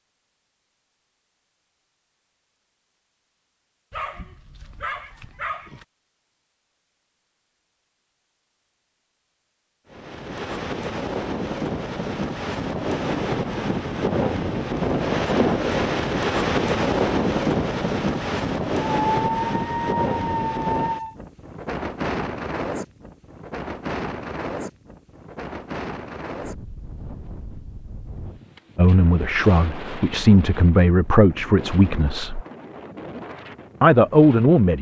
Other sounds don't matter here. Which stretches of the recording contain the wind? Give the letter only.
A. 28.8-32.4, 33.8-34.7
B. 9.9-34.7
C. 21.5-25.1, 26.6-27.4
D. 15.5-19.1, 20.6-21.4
B.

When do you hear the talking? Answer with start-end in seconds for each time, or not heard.
28.8-32.4, 33.8-34.7.